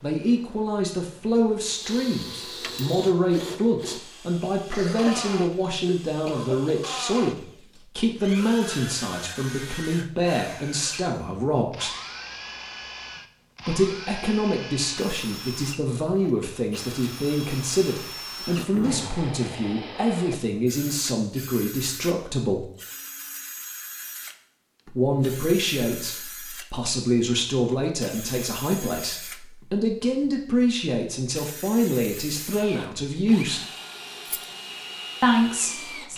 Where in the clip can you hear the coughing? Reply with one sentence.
The coughing can be heard from 4.7 to 6.8 s and from 18.6 to 19.2 s.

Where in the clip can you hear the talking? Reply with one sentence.
You can hear the talking from 0.0 to 11.9 s, from 13.7 to 22.7 s, from 24.9 to 33.6 s and from 35.2 to 36.1 s.